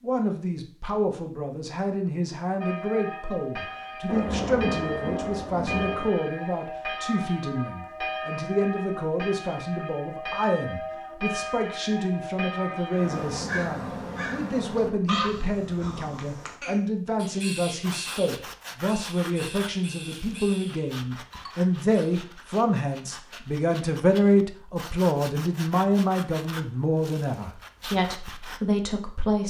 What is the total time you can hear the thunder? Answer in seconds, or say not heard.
2 s.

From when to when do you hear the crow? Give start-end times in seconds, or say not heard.
12.9-22.1.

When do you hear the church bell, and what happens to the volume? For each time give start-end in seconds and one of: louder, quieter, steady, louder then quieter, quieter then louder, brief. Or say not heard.
2.6-13.4 steady.